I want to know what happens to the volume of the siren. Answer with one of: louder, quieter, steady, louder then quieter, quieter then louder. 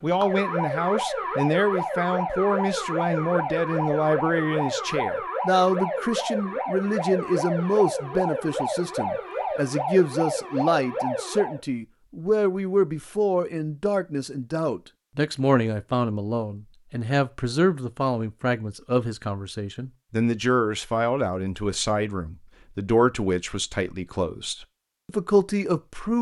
steady.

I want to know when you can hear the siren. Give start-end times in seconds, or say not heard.
0.0-11.6.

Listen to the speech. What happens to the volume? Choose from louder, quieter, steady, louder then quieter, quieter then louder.
steady.